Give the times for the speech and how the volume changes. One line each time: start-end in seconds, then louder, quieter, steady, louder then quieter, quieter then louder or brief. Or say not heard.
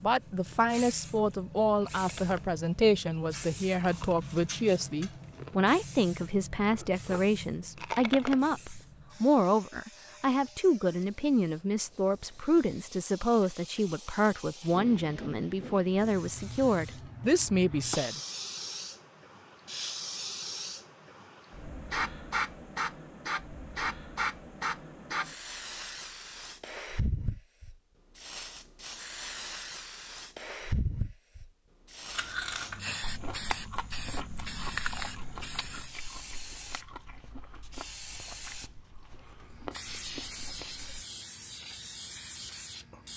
0.0-18.2 steady.